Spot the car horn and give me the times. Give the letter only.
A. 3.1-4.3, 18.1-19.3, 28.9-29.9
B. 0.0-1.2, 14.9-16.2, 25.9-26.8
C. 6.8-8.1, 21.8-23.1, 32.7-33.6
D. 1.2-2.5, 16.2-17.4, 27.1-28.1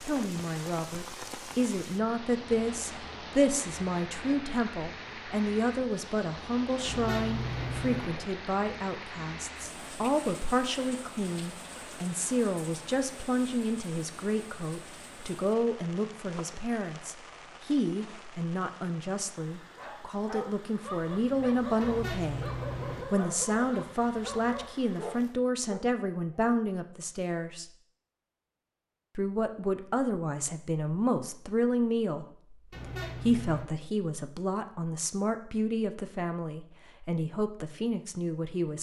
C.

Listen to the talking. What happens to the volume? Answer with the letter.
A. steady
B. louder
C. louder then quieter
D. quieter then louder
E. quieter
A.